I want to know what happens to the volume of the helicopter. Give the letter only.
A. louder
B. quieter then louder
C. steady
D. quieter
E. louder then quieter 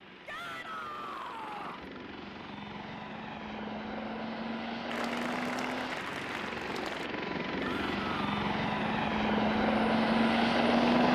A.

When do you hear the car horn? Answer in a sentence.
The car horn can't be heard in this clip.